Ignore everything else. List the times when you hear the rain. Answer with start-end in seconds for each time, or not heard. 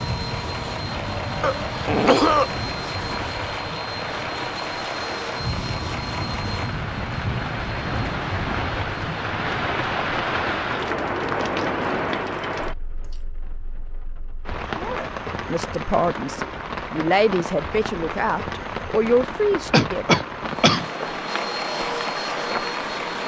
0.0-23.2.